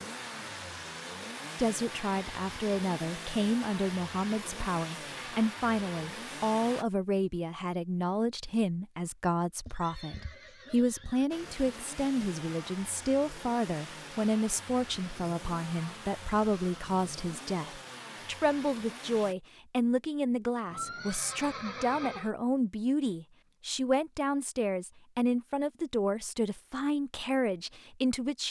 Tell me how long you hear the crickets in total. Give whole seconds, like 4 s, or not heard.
not heard.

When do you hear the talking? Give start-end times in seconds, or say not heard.
1.6-28.4.